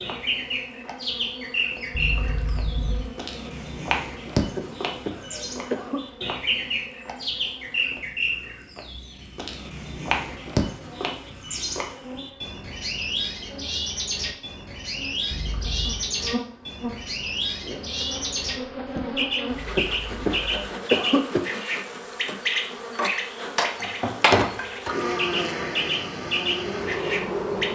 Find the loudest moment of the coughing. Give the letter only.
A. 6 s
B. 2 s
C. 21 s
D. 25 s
C.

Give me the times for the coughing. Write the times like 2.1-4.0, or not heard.
4.5-6.0, 19.8-21.5.